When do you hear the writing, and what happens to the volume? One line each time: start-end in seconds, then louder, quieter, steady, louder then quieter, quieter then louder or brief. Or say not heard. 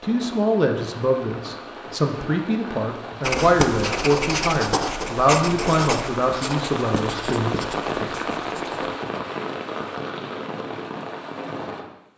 3.2-8.8 quieter.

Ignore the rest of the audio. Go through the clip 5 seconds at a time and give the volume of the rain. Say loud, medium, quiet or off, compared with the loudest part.
medium, loud, loud.